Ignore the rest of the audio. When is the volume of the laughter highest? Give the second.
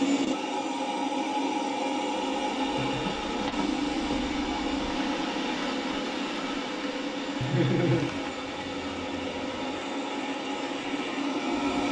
8 s.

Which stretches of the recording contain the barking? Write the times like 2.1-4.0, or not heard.
not heard.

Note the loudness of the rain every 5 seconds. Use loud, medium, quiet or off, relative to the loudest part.
loud, loud, medium.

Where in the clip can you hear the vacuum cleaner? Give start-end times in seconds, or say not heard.
0.0-11.8.